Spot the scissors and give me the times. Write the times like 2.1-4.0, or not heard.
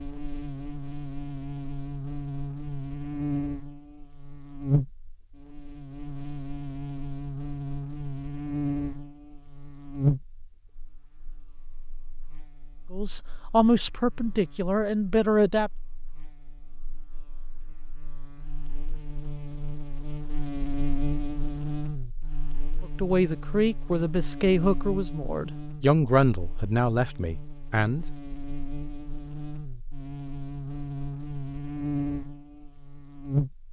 not heard.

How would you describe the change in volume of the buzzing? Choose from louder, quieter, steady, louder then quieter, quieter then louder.
quieter then louder.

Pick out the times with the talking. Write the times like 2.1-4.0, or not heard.
12.9-15.7, 22.9-28.1.